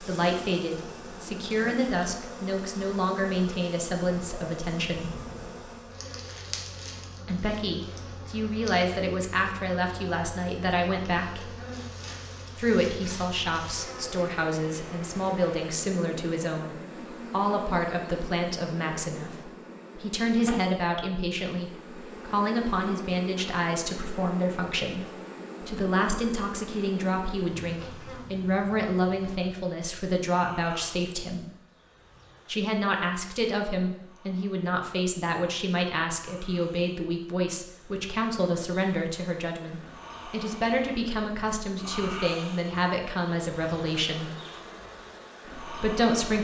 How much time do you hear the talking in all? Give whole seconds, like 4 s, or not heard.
41 s.